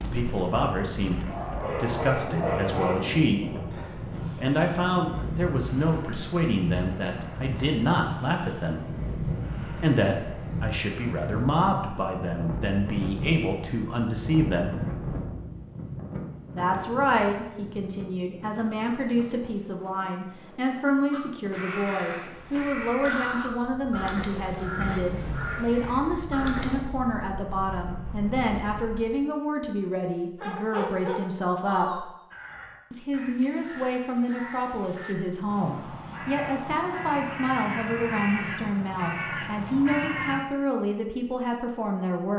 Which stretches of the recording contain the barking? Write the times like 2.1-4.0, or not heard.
1.2-3.0, 24.8-26.2, 30.4-32.0.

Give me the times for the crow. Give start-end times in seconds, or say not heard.
21.1-26.9, 32.3-40.4.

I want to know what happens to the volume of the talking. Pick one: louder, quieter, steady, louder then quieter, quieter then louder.
steady.